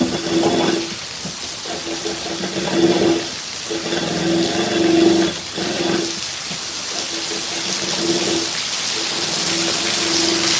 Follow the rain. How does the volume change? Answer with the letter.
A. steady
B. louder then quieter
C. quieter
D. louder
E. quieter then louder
D.